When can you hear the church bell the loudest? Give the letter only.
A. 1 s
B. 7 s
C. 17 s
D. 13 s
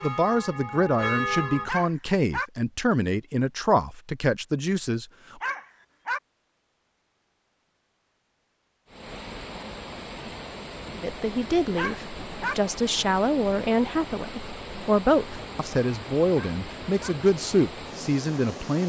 A.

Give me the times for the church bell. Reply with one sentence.
The church bell can be heard from 0.0 to 1.7 s.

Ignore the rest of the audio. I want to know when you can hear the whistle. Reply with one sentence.
The whistle can't be heard in this clip.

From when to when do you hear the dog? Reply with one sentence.
You can hear the dog from 1.6 to 2.5 s, from 5.4 to 6.2 s, from 11.8 to 12.6 s and from 16.3 to 17.1 s.